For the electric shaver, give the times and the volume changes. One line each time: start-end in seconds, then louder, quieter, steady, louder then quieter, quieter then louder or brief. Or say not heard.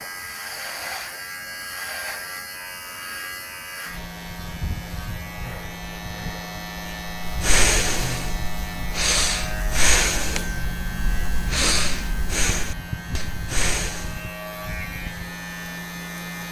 0.0-16.4 steady.